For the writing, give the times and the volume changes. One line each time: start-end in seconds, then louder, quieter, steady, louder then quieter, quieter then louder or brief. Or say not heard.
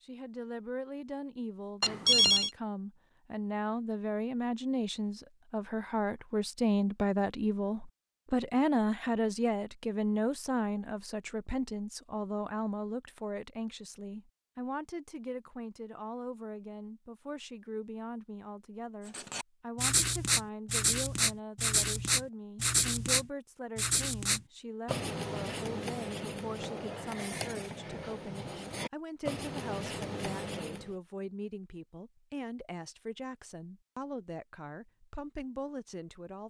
19.1-30.9 quieter.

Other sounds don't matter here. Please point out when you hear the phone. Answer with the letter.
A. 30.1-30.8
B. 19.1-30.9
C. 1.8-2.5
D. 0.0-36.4
C.